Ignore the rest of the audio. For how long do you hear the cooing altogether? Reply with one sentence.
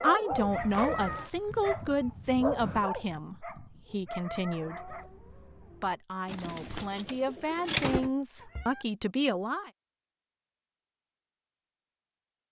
You can hear the cooing for 2 seconds altogether.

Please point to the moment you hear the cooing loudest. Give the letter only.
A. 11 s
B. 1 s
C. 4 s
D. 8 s
D.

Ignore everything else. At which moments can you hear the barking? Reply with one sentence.
The barking can be heard from 0.0 to 5.1 s.